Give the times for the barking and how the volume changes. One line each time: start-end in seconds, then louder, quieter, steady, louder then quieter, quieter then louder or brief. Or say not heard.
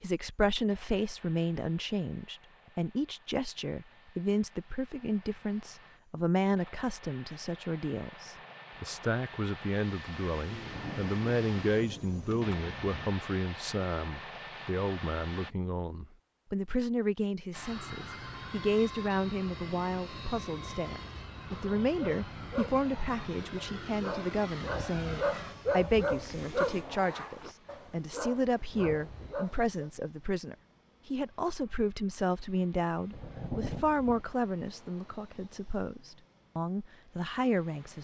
21.8-29.9 louder then quieter.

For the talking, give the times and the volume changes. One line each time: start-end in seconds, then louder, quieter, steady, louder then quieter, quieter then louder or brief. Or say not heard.
0.0-37.9 steady.